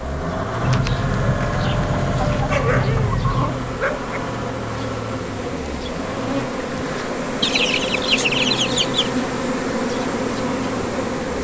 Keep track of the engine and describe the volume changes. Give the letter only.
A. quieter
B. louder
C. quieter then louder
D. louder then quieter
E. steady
A.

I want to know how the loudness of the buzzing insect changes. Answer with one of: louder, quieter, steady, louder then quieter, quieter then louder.
louder.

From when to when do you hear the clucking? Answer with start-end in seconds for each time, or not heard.
0.6-3.5, 7.4-9.1.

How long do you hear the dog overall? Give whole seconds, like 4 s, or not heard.
2 s.